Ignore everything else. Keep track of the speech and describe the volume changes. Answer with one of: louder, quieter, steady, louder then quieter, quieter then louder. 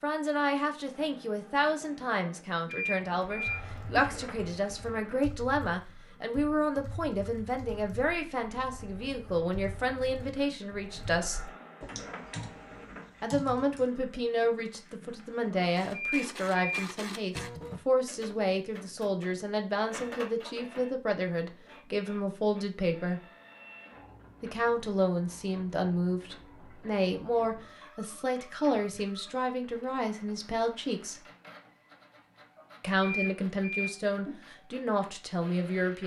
steady.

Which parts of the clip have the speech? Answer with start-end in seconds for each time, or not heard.
0.0-11.5, 13.2-23.2, 24.4-31.2, 32.8-36.0.